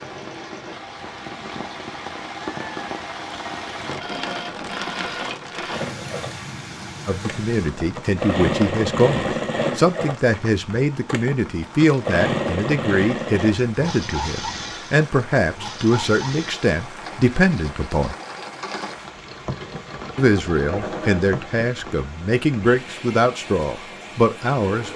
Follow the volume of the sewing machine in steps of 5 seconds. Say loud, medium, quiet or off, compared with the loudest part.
medium, loud, loud, medium, medium.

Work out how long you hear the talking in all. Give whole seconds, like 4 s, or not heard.
16 s.